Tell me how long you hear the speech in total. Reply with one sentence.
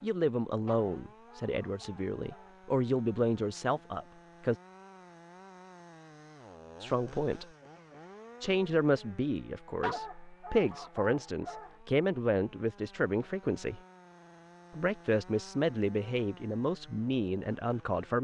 You can hear the speech for 14 seconds altogether.